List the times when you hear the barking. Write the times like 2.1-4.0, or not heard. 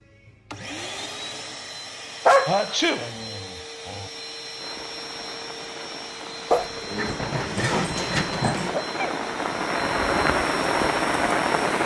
2.2-4.1, 6.5-8.8.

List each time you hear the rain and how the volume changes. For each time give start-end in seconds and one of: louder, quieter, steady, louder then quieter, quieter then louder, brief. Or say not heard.
4.5-11.8 louder.